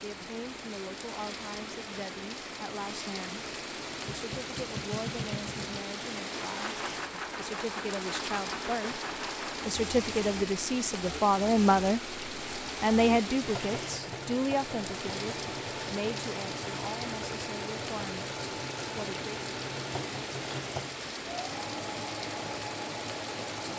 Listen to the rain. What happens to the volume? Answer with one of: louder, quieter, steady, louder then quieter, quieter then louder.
steady.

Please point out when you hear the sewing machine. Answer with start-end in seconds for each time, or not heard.
3.8-23.7.